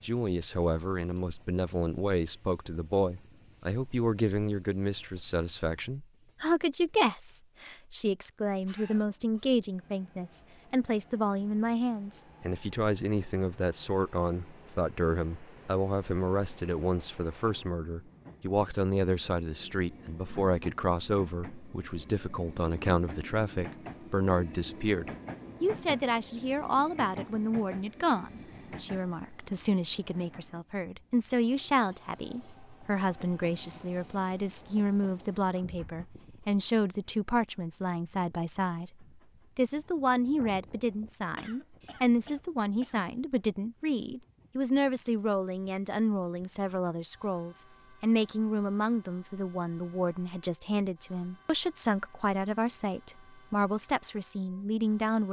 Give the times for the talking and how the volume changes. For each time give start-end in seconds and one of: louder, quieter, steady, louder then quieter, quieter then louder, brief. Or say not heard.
0.0-55.2 steady.